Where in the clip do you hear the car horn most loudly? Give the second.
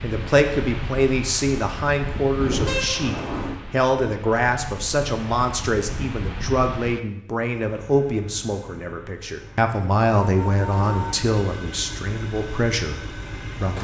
3 s.